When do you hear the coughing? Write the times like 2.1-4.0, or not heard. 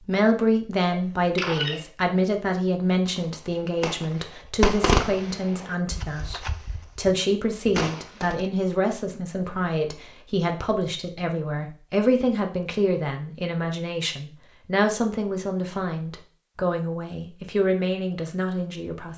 0.9-1.8.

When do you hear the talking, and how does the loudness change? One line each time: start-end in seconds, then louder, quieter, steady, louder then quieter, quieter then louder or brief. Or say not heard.
0.0-19.1 steady.